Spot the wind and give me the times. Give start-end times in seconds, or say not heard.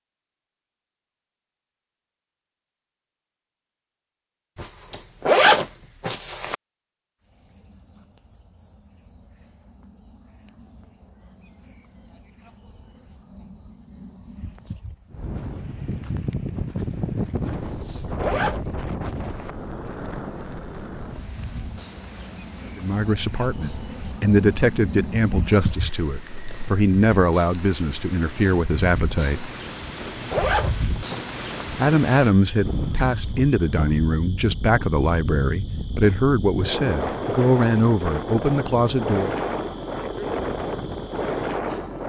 15.1-42.0.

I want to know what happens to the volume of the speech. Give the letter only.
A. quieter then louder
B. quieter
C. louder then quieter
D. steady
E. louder
D.